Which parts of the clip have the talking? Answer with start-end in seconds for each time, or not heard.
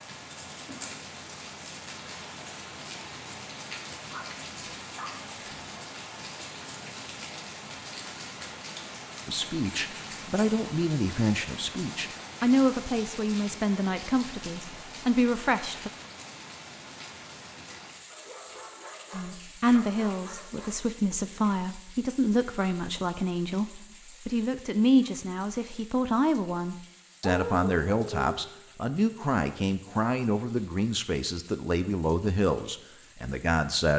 9.2-15.9, 19.1-33.9.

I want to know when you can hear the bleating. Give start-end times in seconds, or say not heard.
not heard.